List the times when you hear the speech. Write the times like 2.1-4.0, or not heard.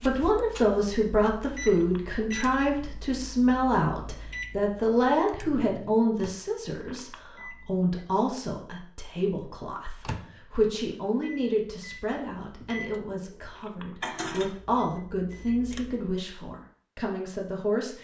0.0-17.9.